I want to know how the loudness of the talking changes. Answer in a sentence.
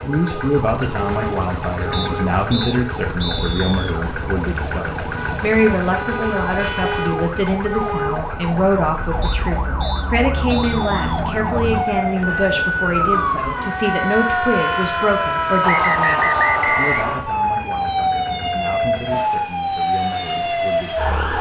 The volume of the talking goes down.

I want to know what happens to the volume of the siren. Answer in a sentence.
The loudness of the siren goes up.